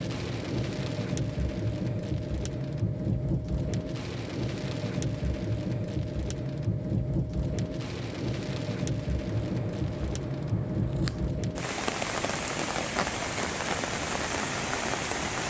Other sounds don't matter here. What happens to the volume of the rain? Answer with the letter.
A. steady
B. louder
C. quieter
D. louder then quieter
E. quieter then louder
A.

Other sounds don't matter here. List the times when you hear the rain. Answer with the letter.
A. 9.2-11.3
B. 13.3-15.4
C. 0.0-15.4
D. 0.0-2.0
C.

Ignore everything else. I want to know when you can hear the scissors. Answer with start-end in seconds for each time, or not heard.
9.2-11.3.